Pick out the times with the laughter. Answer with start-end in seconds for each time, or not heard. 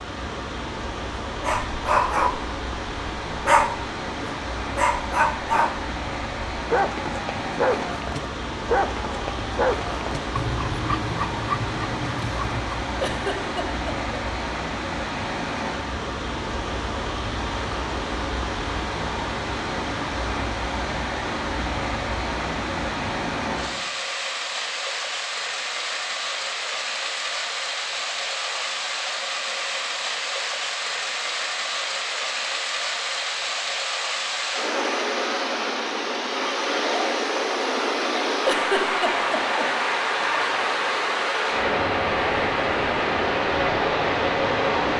13.0-14.2, 38.5-39.6.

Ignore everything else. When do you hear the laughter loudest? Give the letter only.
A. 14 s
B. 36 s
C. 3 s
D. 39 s
D.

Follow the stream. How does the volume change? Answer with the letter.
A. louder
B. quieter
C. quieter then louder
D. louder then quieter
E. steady
A.